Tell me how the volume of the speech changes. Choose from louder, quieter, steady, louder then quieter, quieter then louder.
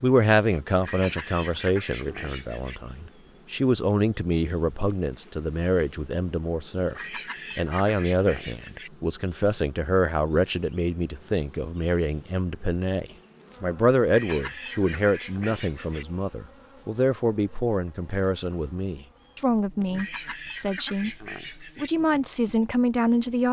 steady.